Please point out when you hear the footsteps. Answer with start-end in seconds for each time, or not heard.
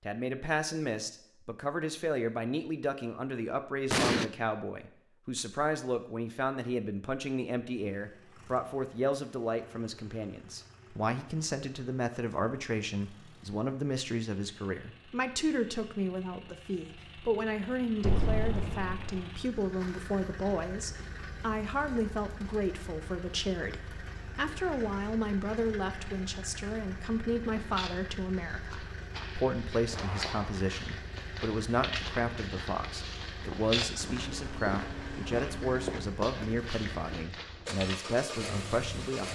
27.4-38.0.